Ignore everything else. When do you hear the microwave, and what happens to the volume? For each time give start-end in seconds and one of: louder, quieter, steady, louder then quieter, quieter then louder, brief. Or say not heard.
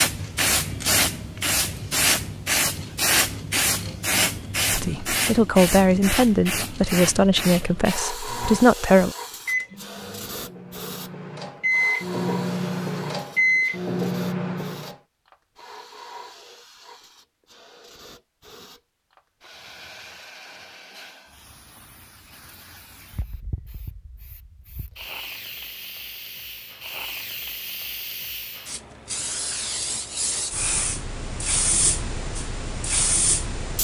8.3-14.9 quieter then louder.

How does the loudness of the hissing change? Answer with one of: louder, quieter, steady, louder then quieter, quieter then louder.
quieter then louder.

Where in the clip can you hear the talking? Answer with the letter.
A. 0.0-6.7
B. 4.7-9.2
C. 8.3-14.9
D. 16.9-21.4
B.